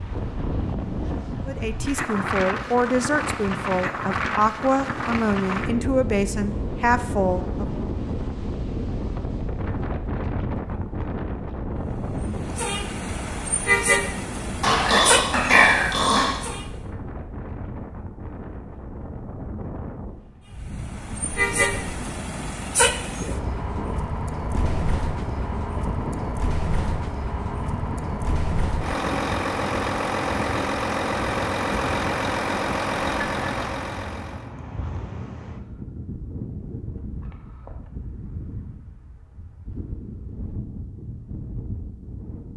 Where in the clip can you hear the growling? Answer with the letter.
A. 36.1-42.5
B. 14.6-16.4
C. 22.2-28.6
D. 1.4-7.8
B.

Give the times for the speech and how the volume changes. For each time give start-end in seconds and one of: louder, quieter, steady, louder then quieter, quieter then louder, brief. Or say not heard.
1.4-7.8 steady.